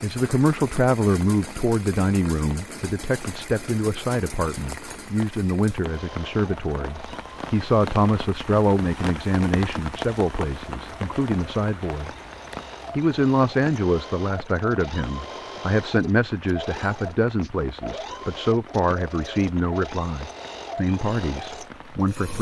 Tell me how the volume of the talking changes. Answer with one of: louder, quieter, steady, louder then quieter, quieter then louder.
steady.